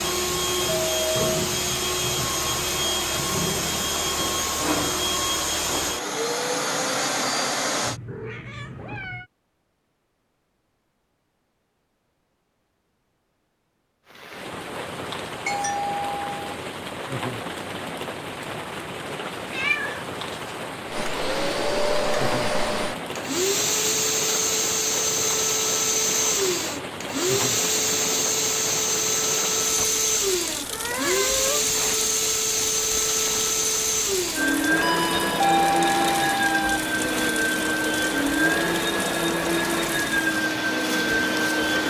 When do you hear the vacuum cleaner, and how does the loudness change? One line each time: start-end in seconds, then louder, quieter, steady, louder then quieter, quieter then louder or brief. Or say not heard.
0.0-8.0 steady
20.9-41.8 steady.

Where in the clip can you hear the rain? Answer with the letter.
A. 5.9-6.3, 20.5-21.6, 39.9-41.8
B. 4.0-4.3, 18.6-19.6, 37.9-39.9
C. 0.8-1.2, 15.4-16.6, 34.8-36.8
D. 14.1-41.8
D.